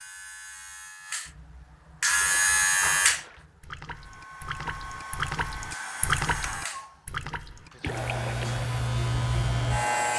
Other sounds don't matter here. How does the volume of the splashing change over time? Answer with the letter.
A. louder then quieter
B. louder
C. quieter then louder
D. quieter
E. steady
A.